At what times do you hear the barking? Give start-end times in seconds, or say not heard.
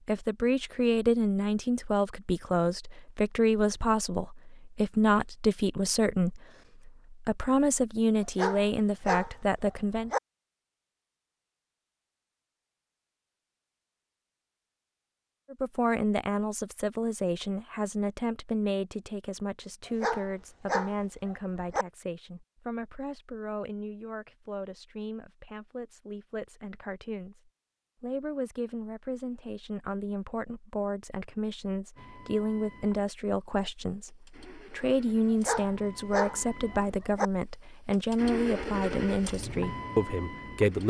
8.2-10.2, 19.9-21.9, 35.3-37.3.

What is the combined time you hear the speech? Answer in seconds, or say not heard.
35 s.